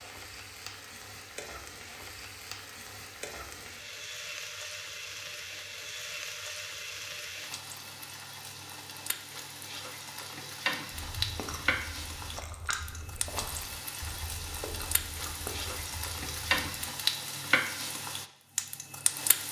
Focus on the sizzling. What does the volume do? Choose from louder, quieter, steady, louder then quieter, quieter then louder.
louder.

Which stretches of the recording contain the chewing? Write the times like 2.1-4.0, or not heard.
10.9-16.5.